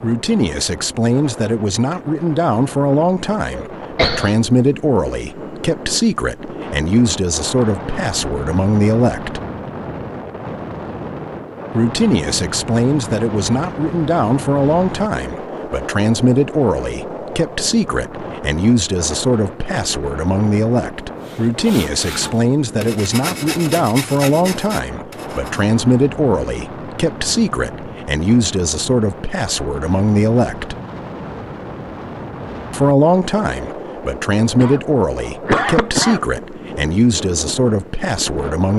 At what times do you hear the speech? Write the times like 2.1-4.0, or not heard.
0.0-9.4, 11.7-30.8, 32.7-38.7.